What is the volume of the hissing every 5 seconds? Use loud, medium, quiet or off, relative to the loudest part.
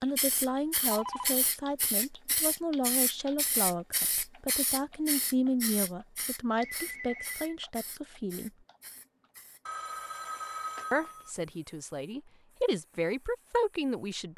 loud, medium, quiet.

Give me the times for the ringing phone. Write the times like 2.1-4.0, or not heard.
0.8-1.4, 6.6-7.5, 9.7-11.3.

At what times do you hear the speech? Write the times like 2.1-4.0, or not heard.
0.0-8.5, 10.9-14.3.